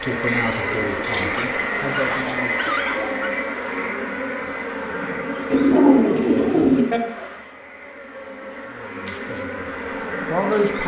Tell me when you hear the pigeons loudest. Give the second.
6 s.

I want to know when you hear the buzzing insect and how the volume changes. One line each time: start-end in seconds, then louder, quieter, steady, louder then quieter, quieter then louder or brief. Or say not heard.
0.0-10.8 quieter then louder.